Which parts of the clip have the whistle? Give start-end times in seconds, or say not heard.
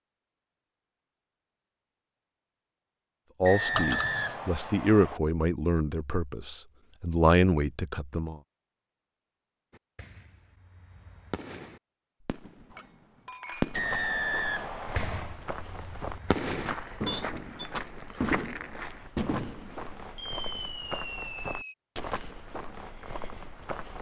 3.5-5.2, 13.7-15.4.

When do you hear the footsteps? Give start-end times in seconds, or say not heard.
13.6-23.9.